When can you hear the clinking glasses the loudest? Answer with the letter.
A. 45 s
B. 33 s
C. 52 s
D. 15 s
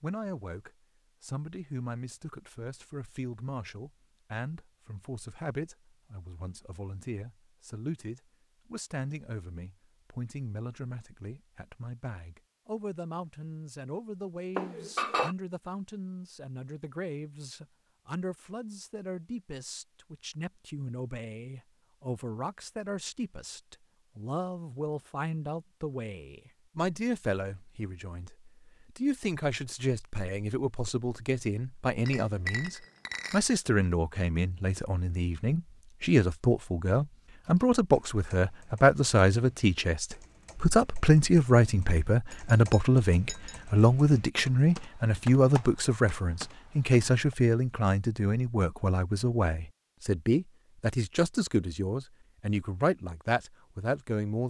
D.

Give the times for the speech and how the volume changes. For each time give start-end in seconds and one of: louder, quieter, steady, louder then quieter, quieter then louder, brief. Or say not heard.
0.0-54.4 louder.